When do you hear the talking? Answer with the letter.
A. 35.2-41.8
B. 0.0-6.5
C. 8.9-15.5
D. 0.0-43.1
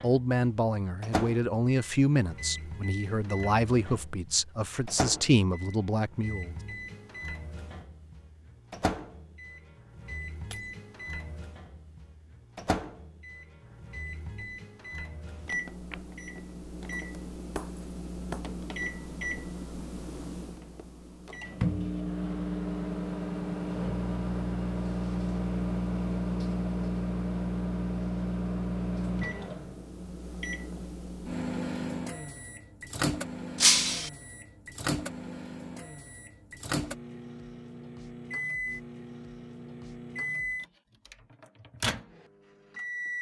B.